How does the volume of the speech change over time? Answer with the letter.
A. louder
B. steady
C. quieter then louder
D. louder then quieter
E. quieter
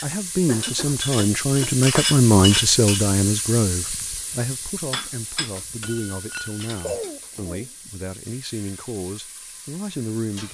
E.